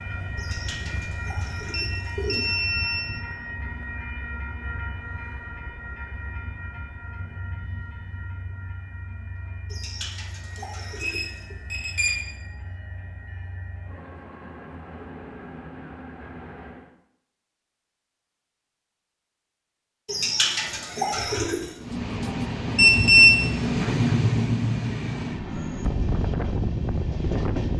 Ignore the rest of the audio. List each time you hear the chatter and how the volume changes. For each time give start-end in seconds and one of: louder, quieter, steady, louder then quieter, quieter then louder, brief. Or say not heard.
not heard.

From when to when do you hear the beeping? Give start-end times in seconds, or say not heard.
1.7-3.1, 10.6-12.2, 22.8-24.1.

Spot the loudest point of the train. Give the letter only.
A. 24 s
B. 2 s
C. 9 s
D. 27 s
A.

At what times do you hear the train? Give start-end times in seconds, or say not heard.
0.0-16.9, 21.8-27.7.